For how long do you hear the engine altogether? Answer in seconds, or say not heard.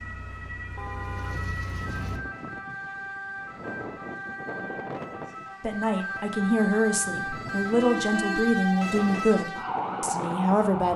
2 s.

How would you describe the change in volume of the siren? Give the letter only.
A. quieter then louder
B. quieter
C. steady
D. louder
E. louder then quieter
D.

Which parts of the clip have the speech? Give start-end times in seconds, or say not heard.
5.6-10.9.